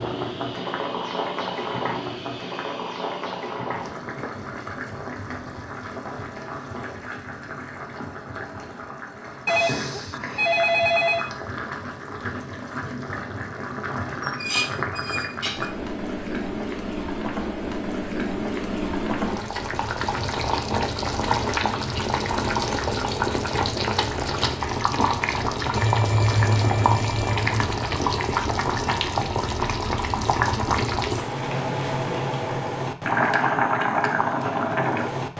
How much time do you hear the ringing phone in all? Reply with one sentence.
The ringing phone can be heard for 4 seconds in total.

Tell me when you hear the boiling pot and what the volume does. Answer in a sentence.
The boiling pot can be heard from 0.0 to 35.3 s, getting louder.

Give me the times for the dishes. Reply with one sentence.
You can hear the dishes from 14.2 to 15.7 s.